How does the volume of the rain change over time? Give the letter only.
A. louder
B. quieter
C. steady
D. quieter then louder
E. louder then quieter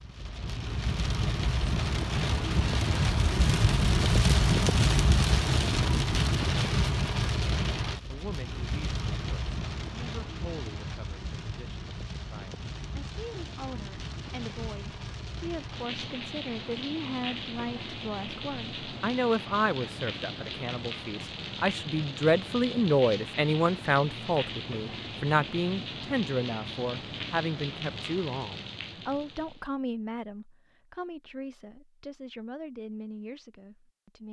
B.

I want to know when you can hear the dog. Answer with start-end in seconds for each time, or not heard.
not heard.